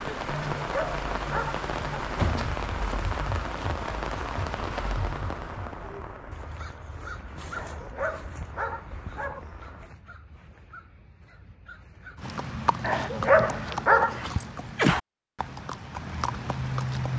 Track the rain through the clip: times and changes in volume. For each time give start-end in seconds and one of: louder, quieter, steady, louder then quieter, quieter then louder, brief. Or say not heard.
0.0-9.9 quieter.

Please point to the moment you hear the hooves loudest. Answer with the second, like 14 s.
15 s.